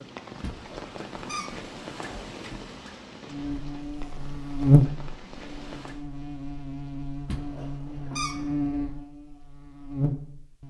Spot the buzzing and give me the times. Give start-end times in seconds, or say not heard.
3.3-10.6.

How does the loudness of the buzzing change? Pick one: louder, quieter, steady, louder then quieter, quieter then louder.
quieter then louder.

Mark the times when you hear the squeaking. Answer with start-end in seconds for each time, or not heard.
0.4-2.7, 7.2-8.6.